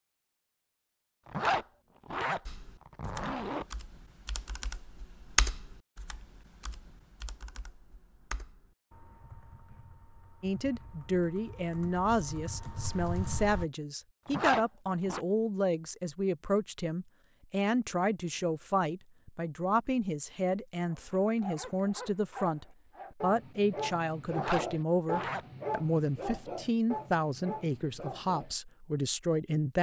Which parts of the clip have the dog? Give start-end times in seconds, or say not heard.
20.9-28.6.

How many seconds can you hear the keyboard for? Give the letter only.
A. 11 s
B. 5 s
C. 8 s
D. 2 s
A.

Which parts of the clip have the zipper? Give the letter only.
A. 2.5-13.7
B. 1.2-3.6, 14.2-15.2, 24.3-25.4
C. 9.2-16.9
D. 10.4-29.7
B.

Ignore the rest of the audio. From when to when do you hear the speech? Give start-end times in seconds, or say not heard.
10.4-29.7.